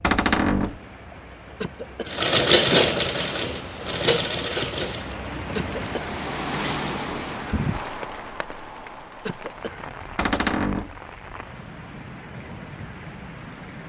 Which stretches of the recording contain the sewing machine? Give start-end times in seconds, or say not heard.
2.0-5.2.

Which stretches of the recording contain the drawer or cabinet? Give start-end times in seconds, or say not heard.
0.0-0.8, 10.2-10.9.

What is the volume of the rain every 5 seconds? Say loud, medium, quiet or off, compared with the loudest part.
medium, loud, medium.